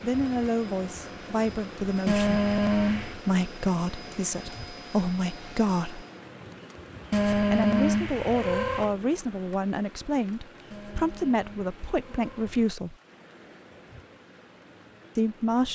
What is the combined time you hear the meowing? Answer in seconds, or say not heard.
5 s.